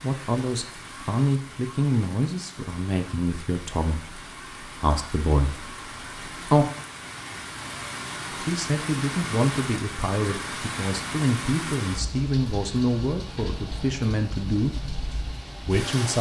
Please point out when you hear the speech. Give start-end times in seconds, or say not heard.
0.0-6.7, 8.3-14.8, 15.6-16.1.